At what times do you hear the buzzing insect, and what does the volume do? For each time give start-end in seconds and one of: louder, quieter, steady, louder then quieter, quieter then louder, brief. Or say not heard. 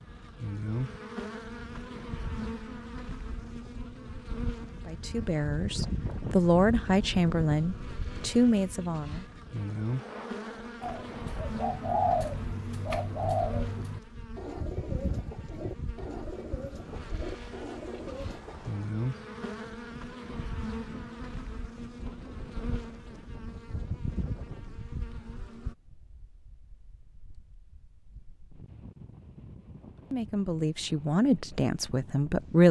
0.1-25.8 steady.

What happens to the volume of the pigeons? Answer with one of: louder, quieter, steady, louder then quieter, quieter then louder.
quieter.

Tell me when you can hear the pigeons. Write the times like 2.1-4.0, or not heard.
10.8-18.7.